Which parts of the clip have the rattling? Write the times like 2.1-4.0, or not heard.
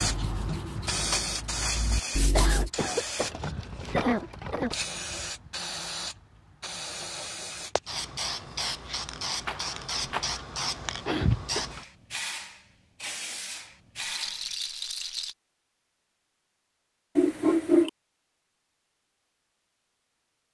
3.3-4.8, 9.4-10.3, 14.0-15.3.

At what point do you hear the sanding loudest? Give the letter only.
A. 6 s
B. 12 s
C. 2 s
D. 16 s
C.